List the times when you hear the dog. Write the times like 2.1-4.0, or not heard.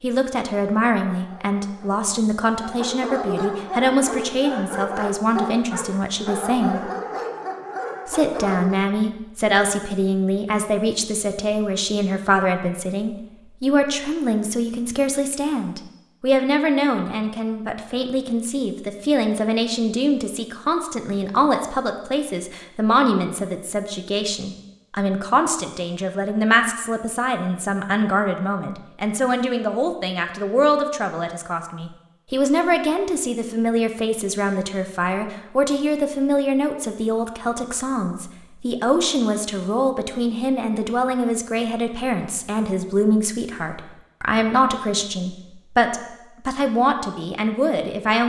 1.1-8.8.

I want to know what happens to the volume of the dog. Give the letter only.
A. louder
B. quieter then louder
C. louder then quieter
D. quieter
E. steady
A.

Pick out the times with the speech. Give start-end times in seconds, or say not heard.
0.0-6.9, 8.1-48.2.